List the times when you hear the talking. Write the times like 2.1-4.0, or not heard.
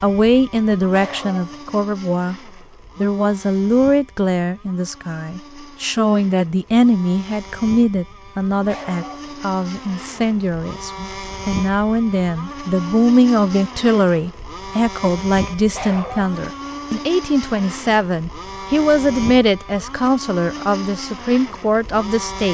0.0-2.4, 3.0-22.5.